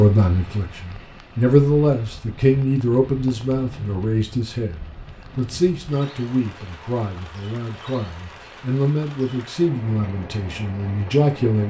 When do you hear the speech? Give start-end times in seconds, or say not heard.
0.0-11.6.